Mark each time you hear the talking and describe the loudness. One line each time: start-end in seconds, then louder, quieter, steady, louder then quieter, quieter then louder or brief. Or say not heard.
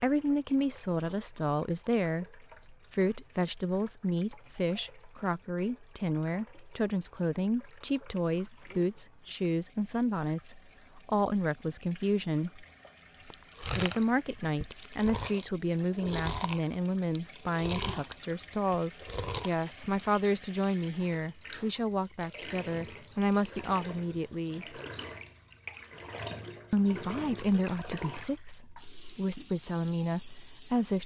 0.0-12.7 steady
13.8-24.8 steady
26.7-31.0 quieter then louder.